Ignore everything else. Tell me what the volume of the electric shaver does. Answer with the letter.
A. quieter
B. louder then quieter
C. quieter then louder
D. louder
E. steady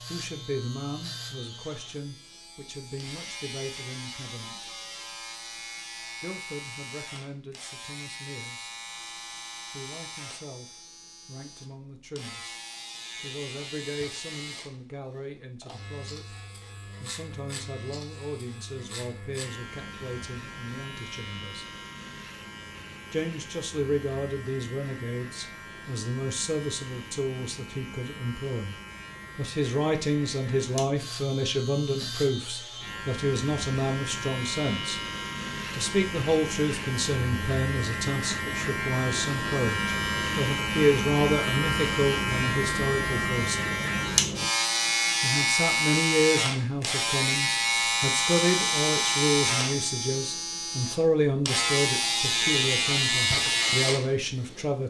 D.